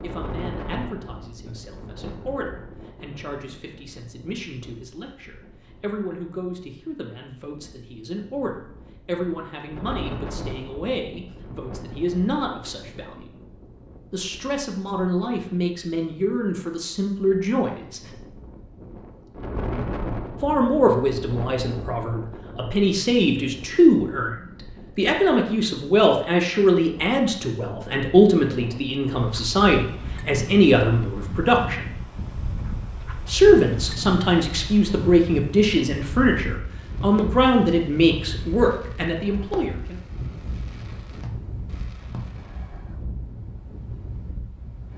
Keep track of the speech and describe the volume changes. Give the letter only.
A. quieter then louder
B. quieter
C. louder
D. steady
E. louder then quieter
C.